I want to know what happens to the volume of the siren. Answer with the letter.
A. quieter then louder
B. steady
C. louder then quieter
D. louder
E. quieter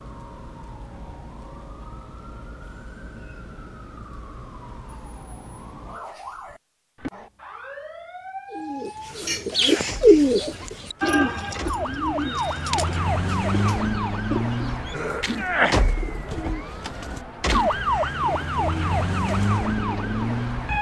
D.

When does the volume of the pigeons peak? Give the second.
10 s.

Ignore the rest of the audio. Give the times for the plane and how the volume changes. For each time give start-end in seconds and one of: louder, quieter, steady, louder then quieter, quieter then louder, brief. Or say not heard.
not heard.